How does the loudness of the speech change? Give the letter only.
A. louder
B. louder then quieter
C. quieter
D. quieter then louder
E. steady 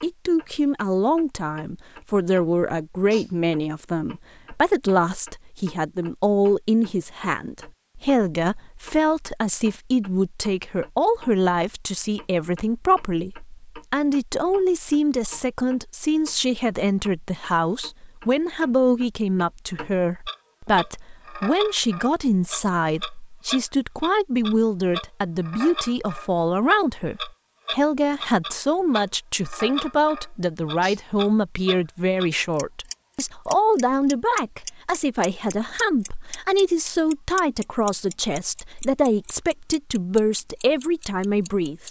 E.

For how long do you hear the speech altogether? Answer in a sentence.
You can hear the speech for 42 seconds altogether.